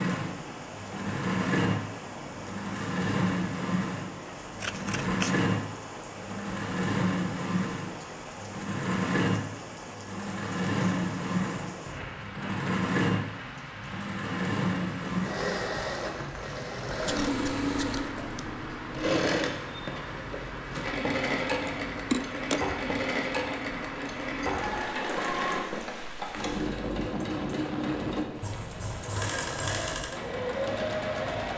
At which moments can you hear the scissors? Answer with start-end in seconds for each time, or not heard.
4.6-5.3, 17.1-18.5, 21.6-22.6.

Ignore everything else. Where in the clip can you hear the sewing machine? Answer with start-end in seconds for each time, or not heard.
0.0-31.5.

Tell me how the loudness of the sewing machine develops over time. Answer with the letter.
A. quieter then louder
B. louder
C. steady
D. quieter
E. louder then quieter
C.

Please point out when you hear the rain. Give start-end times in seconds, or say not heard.
0.0-31.5.